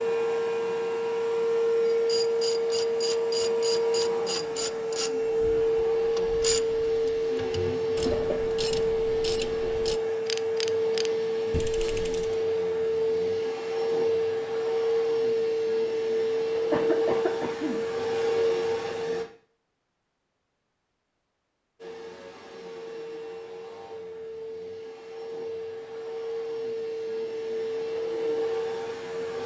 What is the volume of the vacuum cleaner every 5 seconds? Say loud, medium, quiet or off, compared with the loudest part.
loud, loud, loud, loud, quiet, medium.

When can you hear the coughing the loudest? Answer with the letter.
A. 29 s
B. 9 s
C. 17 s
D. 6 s
C.